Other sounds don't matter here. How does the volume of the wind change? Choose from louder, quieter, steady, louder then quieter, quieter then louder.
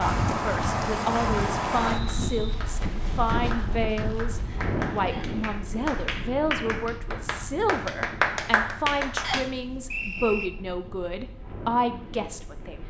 quieter.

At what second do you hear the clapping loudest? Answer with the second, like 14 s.
8 s.